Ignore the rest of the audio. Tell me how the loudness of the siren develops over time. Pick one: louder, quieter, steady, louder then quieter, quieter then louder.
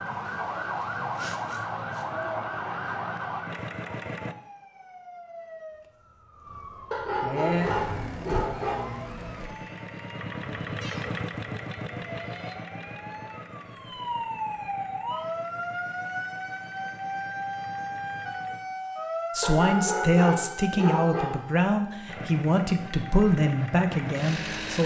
quieter then louder.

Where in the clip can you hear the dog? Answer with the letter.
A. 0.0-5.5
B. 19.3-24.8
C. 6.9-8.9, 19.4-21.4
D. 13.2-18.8
C.